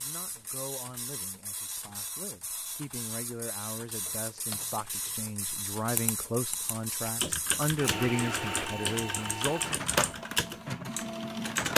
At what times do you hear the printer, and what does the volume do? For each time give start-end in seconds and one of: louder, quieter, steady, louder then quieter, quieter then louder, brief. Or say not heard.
0.0-11.7 louder.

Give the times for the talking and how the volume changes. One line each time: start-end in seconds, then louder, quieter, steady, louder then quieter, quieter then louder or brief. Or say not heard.
0.0-9.8 louder.